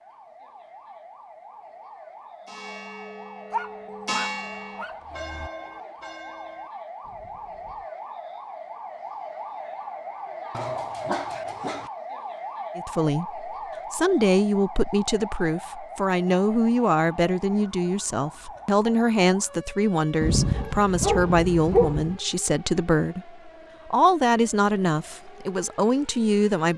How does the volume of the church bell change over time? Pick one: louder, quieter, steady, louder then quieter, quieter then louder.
louder then quieter.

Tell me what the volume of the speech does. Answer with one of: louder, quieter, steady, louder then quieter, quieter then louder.
steady.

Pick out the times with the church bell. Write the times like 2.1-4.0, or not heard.
2.5-7.9.